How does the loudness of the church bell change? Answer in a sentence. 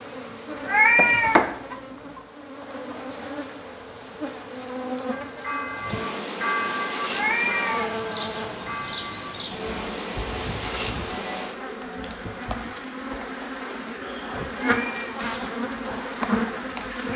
The loudness of the church bell goes down.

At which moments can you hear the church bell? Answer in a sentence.
The church bell can be heard from 5.1 to 12.6 s.